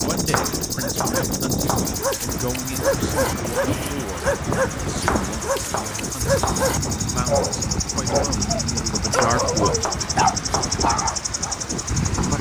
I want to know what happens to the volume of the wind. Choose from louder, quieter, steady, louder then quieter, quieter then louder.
steady.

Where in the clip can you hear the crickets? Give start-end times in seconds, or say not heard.
0.0-12.3.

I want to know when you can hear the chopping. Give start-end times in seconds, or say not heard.
0.2-2.0, 5.0-6.7, 9.1-10.8.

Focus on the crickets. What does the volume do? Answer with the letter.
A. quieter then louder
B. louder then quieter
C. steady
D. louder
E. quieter
A.